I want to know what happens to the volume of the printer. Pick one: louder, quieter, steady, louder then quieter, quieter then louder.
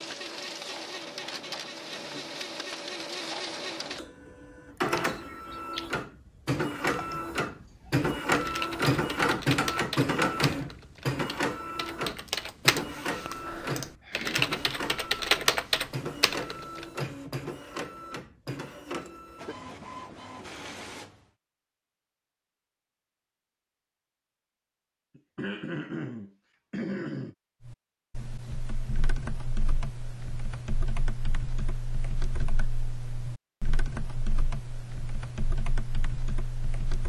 louder then quieter.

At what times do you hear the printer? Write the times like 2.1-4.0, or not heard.
0.0-21.2.